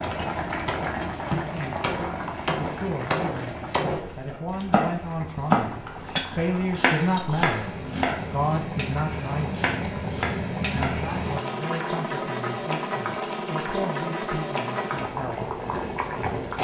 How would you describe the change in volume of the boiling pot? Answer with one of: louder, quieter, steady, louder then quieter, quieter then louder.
quieter then louder.